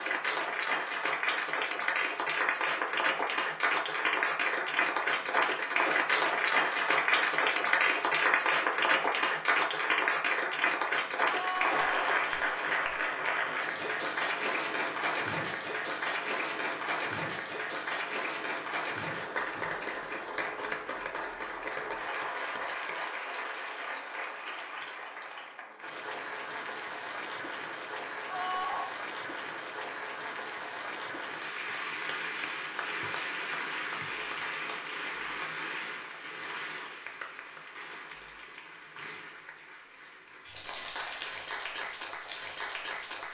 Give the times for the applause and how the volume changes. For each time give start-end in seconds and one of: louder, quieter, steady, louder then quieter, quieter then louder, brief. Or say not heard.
0.0-43.2 quieter.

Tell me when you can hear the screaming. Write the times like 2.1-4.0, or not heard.
11.2-12.2, 28.2-28.9.